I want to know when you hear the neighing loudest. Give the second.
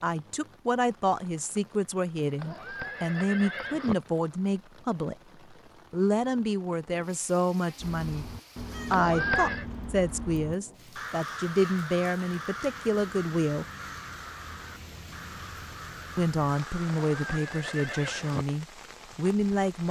9 s.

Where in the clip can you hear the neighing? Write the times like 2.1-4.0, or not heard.
2.4-4.0, 8.9-9.7, 17.1-18.4.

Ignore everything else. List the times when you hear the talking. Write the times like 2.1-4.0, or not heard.
0.0-5.2, 5.9-8.2, 8.9-13.7, 16.1-19.8.